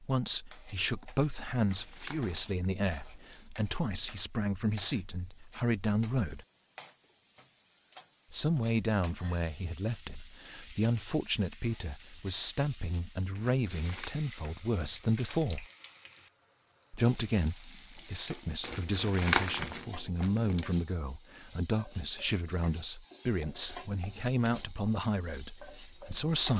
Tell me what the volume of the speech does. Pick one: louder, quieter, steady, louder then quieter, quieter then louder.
steady.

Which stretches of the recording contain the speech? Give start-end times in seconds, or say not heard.
0.0-6.5, 8.3-15.7, 16.9-26.5.